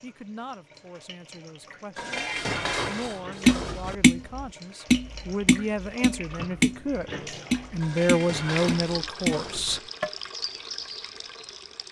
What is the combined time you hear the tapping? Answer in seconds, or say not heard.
7 s.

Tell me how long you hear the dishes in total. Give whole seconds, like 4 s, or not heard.
4 s.